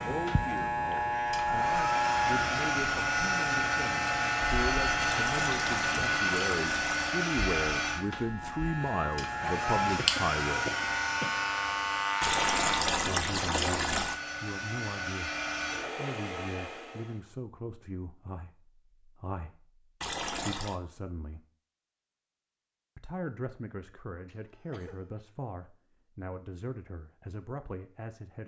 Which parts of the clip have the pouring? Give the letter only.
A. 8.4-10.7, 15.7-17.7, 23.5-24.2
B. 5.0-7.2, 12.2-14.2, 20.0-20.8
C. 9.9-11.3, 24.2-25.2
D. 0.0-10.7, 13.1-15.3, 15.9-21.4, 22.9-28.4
B.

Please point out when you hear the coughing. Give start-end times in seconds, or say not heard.
9.9-11.3, 24.2-25.2.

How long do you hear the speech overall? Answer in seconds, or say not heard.
24 s.